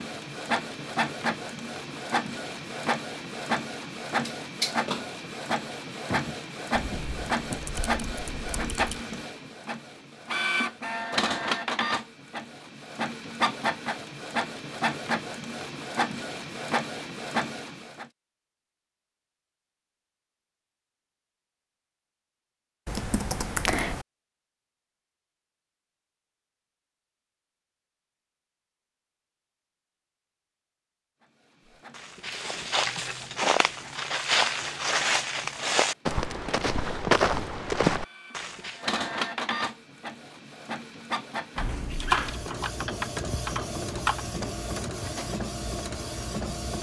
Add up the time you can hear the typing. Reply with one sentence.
You can hear the typing for 6 seconds altogether.